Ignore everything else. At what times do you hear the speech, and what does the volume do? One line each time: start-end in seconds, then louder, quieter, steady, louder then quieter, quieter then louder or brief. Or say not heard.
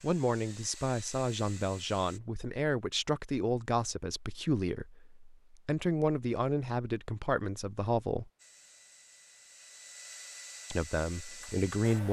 0.0-8.3 steady
10.7-12.0 brief.